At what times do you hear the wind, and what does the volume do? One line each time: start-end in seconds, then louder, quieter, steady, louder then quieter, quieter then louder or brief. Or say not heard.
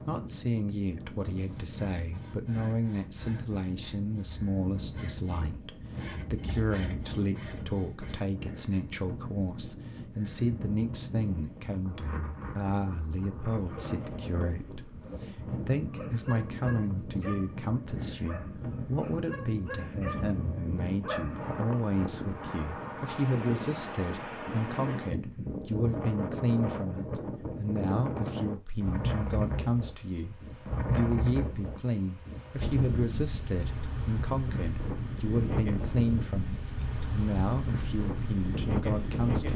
0.0-39.5 louder.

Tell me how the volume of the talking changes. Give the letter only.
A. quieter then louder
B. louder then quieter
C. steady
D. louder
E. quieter
C.